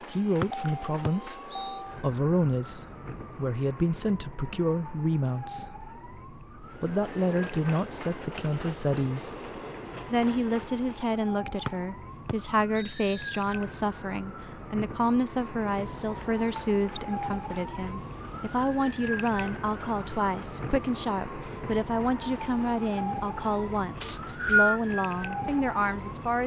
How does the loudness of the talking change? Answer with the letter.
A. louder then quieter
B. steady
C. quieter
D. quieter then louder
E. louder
B.